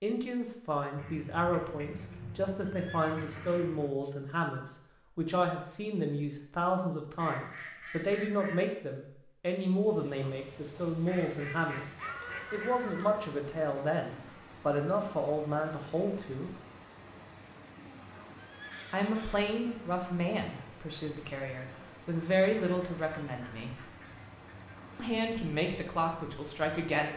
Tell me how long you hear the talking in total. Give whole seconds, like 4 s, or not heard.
23 s.